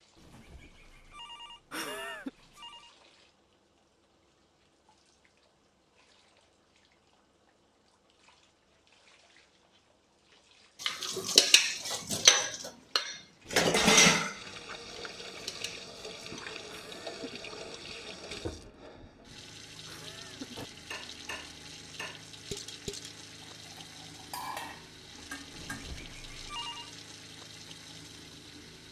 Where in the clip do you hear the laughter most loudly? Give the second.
2 s.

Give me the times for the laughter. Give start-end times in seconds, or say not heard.
1.7-2.3, 16.6-17.4, 19.9-20.6.